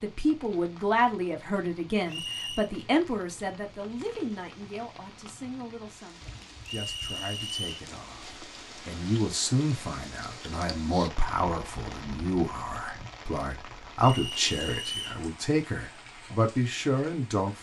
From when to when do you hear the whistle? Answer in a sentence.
The whistle can be heard from 2.0 to 2.7 s, from 6.7 to 7.8 s and from 14.0 to 15.2 s.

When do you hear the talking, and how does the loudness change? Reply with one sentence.
The talking can be heard from 0.0 to 17.5 s, getting quieter then louder.